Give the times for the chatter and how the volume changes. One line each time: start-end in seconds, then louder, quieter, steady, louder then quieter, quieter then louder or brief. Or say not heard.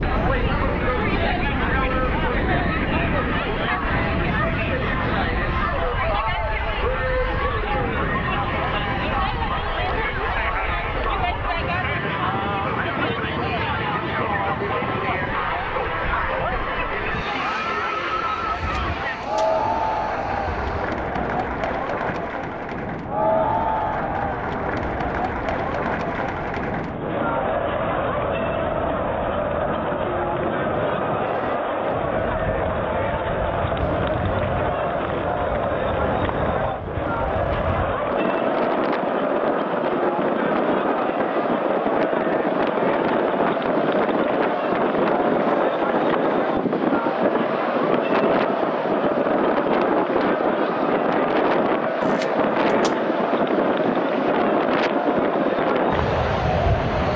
0.0-57.1 steady.